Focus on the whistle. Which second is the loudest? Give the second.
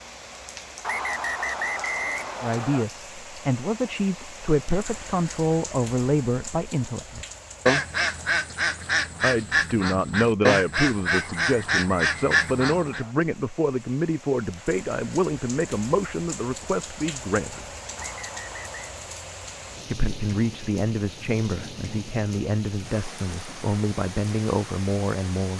2 s.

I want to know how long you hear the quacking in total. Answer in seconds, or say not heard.
6 s.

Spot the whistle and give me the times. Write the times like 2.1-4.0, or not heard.
0.8-2.9, 11.1-13.2, 17.9-19.0.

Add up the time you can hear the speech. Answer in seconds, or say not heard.
19 s.